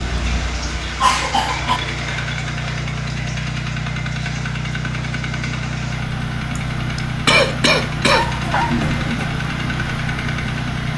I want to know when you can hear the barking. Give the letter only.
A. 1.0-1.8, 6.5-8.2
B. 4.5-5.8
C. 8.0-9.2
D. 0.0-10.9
C.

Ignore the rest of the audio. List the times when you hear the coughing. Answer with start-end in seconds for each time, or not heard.
1.0-1.8, 6.5-8.2.